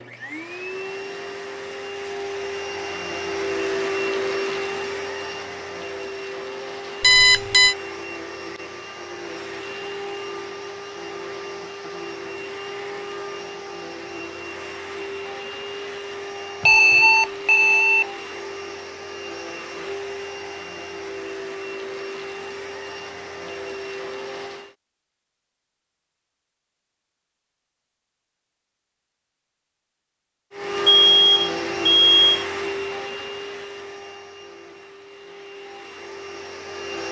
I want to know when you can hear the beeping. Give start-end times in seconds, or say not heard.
7.0-7.8, 16.6-18.1, 30.9-32.3.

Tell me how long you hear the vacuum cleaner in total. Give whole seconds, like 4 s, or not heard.
31 s.